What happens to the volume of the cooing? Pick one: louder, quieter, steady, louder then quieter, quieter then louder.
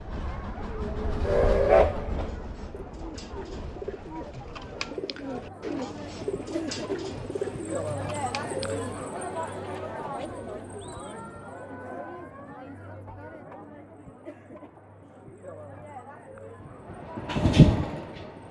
louder then quieter.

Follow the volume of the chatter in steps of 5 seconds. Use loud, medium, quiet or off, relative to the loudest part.
medium, loud, medium, medium.